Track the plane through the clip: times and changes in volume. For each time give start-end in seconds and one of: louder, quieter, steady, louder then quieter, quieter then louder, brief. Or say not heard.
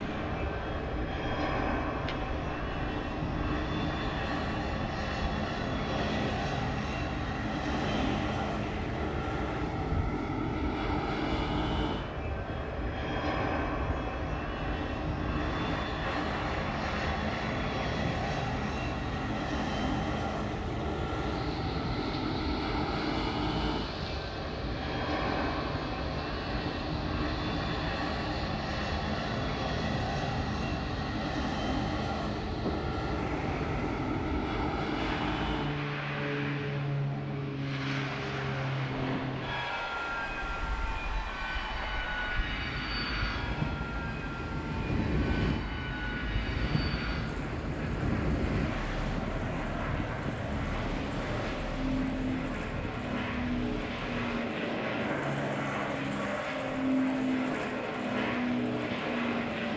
0.0-59.7 steady.